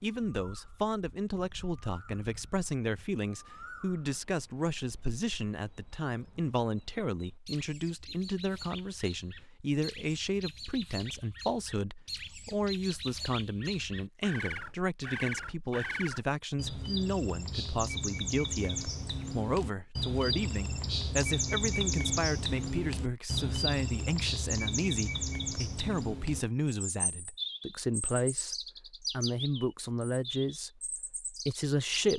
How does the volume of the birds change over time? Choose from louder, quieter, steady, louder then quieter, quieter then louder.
louder then quieter.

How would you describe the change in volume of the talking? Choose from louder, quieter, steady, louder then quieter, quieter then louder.
steady.